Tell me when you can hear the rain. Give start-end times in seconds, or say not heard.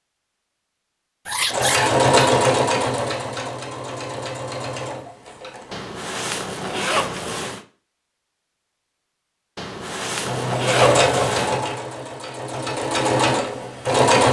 not heard.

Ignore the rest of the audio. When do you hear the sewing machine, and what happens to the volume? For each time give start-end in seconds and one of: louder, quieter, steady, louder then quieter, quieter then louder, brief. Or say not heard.
1.4-5.8 quieter
10.2-14.2 quieter then louder.